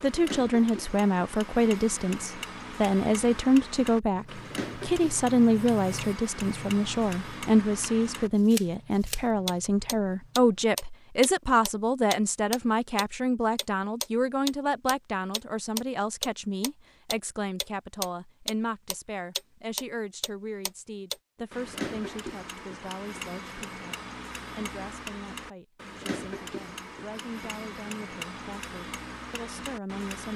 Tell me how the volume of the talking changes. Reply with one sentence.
The volume of the talking goes down.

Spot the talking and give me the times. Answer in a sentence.
The talking can be heard from 0.0 to 30.3 s.